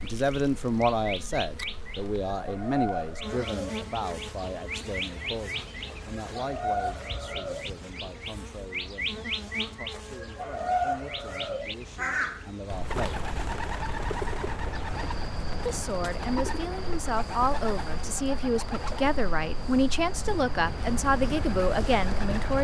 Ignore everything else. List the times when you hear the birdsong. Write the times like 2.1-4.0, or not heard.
0.0-22.6.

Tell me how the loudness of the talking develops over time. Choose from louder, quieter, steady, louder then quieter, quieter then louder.
quieter then louder.